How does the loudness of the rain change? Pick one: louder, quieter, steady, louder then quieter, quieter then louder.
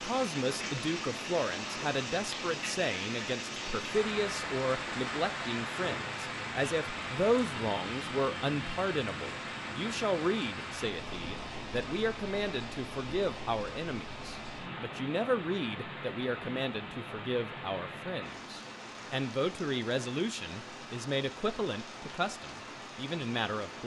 quieter.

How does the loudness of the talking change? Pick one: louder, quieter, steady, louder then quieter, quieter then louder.
steady.